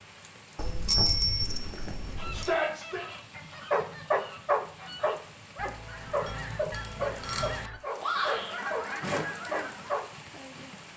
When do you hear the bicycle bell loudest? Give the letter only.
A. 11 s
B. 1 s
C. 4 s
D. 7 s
B.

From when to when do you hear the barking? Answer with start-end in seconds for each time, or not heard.
3.7-10.1.